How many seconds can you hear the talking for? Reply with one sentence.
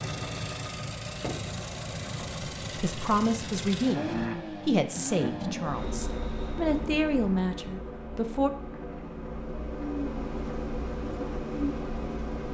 The talking can be heard for 6 seconds in total.